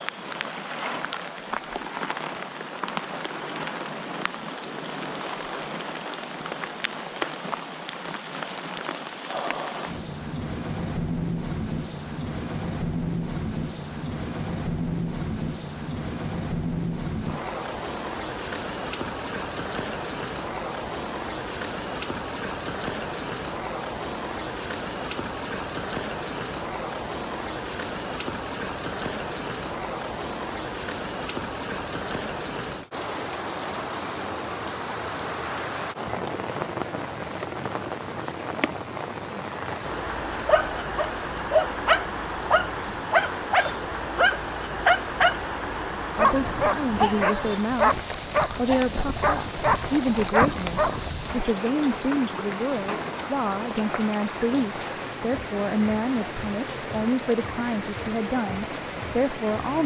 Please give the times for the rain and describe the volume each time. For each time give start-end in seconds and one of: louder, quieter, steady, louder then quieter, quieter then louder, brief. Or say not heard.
0.0-59.8 steady.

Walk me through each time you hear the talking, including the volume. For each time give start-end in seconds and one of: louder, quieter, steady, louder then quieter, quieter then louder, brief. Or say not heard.
46.1-59.8 steady.